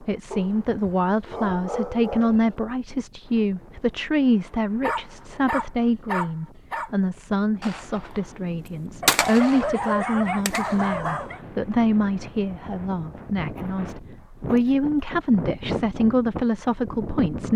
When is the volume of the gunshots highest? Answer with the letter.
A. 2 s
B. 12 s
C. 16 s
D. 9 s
D.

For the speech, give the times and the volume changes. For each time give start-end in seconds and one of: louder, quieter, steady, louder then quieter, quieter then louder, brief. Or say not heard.
0.0-17.5 steady.